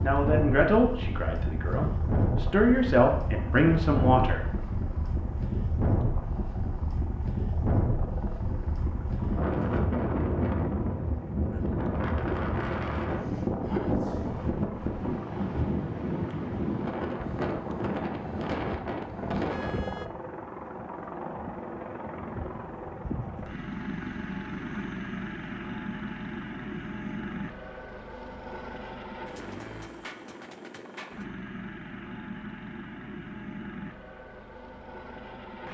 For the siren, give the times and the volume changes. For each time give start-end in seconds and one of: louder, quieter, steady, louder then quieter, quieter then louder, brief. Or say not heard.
not heard.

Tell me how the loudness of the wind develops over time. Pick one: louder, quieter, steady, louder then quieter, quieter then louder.
steady.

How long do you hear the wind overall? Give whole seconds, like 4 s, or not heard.
20 s.